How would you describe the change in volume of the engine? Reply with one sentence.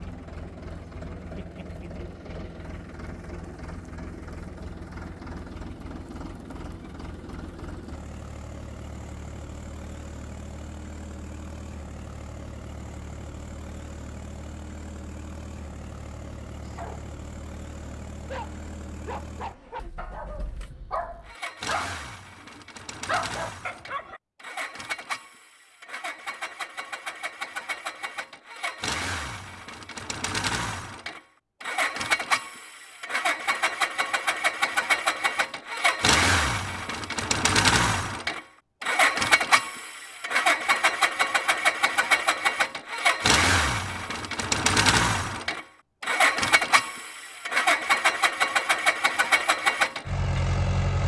The loudness of the engine goes up.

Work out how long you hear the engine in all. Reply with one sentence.
You can hear the engine for 51 seconds altogether.